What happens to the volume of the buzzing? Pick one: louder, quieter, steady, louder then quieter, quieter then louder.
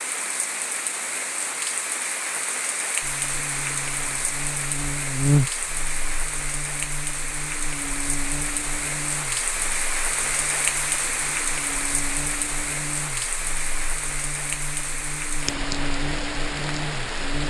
quieter then louder.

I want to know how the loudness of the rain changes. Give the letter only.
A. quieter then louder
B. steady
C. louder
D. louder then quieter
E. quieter
B.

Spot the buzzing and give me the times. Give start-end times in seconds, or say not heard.
3.0-17.4.